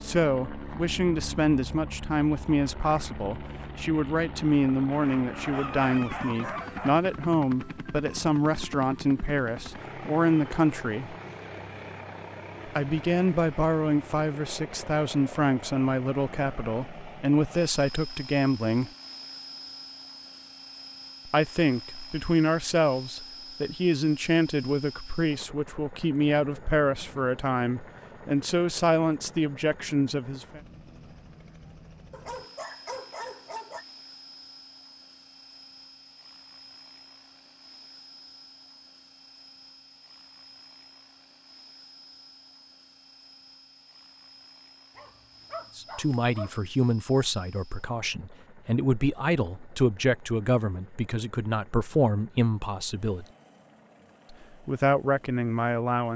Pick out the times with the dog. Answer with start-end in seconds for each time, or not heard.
4.9-6.9, 32.1-33.9, 45.0-46.6.